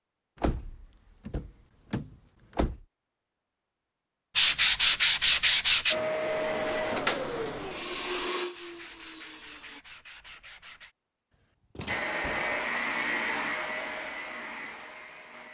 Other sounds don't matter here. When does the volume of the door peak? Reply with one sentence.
The loudest moment of the door is at 7 seconds.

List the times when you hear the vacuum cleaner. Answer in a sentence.
The vacuum cleaner can be heard from 5.9 to 9.8 s and from 11.8 to 15.4 s.